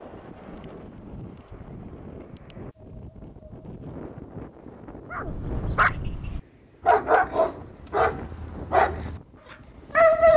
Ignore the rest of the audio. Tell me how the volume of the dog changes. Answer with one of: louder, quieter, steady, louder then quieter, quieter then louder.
louder then quieter.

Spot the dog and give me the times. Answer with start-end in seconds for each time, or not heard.
5.1-10.3.